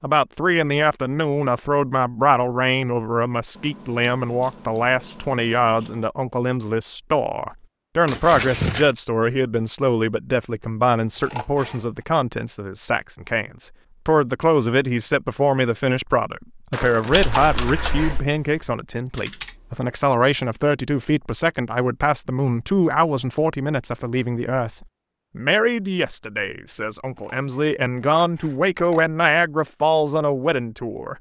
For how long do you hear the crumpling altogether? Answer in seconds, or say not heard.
2 s.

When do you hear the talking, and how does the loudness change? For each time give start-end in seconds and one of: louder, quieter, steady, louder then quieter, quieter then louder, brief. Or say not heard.
0.0-31.1 steady.